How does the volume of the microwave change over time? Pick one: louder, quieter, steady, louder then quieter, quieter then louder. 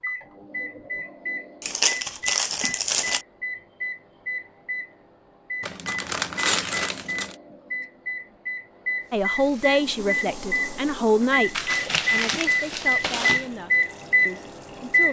louder.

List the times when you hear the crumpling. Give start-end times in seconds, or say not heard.
1.6-3.2, 5.6-7.3, 11.5-13.4.